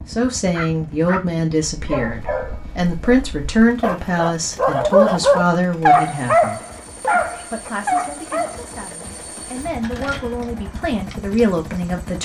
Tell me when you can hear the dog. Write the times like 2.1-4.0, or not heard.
0.5-8.6.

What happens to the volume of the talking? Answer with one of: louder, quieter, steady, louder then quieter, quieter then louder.
quieter then louder.